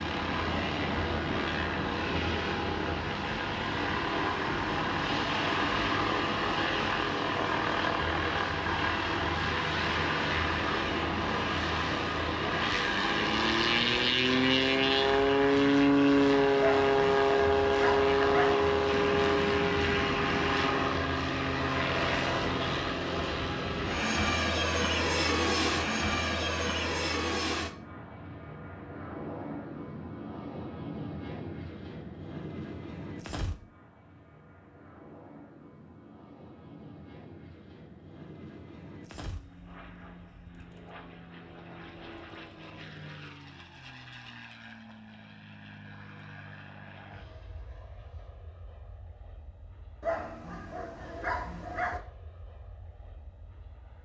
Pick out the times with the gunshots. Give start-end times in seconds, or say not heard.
18.9-20.9.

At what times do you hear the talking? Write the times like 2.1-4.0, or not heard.
not heard.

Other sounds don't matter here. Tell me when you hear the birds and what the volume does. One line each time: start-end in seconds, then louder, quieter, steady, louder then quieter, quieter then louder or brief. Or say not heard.
not heard.